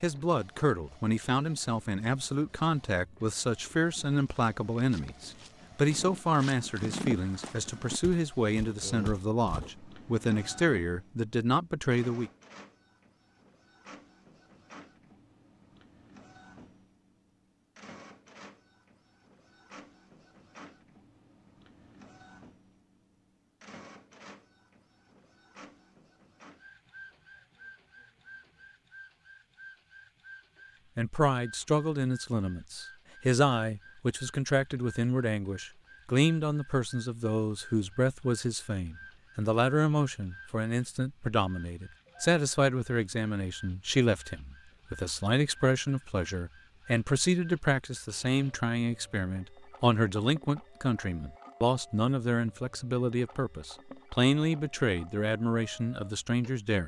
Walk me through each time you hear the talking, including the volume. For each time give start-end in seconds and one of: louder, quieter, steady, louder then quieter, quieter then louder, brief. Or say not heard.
0.0-12.3 steady
30.9-56.8 steady.